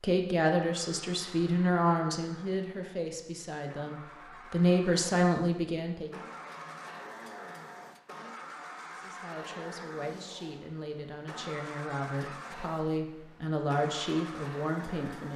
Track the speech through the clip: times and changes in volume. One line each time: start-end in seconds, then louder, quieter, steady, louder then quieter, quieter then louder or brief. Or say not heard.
0.0-6.2 quieter then louder
8.9-15.3 louder.